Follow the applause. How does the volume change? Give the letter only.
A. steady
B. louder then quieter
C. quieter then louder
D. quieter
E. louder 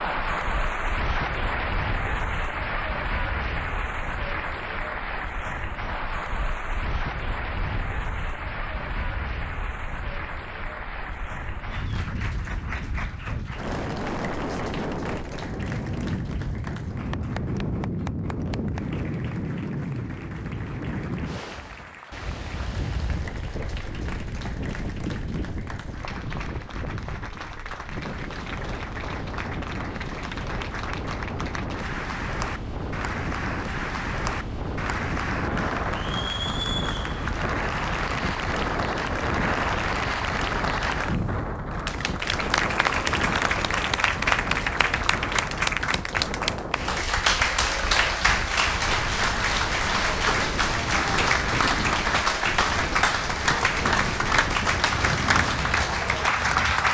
C.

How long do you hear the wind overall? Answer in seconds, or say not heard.
57 s.